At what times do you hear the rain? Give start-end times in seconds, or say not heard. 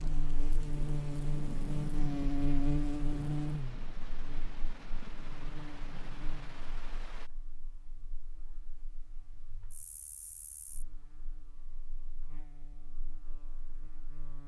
0.0-7.3.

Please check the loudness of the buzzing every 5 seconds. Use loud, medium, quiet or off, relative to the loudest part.
loud, quiet, quiet.